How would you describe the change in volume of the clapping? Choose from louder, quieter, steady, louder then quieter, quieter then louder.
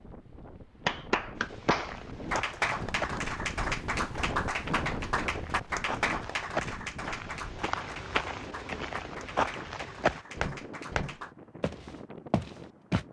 quieter.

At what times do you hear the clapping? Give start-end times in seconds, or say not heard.
0.8-11.3.